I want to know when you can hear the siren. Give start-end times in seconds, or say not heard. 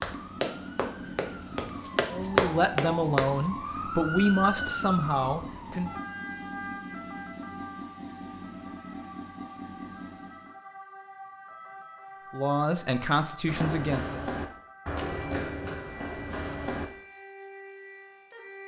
0.1-18.6.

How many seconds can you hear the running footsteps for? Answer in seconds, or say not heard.
7 s.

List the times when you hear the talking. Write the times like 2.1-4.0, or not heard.
2.1-6.0, 12.3-14.2.